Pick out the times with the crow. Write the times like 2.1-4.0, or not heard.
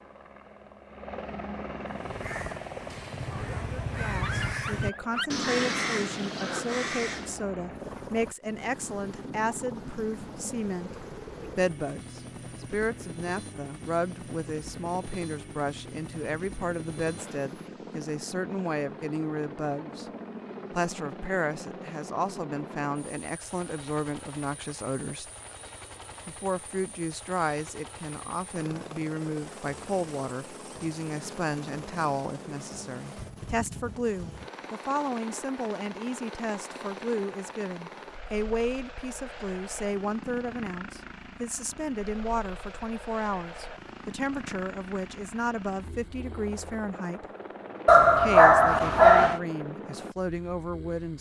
1.9-7.4.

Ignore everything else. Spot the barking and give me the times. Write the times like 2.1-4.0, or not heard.
3.2-5.3, 47.9-49.4.